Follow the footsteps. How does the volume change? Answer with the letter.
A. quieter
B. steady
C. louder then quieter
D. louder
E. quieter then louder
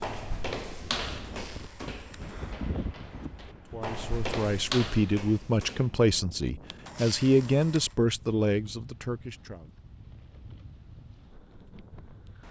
E.